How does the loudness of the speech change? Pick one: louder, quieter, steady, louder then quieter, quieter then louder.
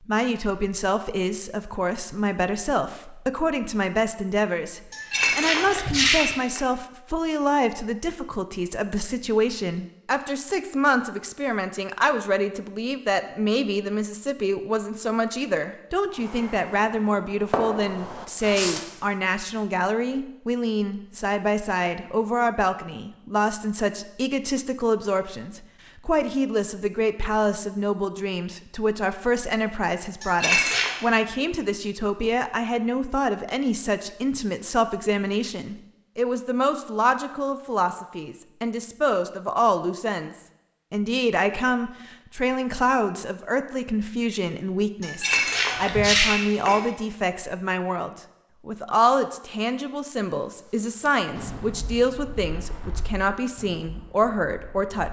steady.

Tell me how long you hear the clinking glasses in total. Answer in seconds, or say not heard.
4 s.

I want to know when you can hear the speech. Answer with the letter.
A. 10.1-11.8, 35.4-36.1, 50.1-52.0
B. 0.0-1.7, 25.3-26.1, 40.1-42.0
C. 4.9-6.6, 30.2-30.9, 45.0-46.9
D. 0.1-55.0
D.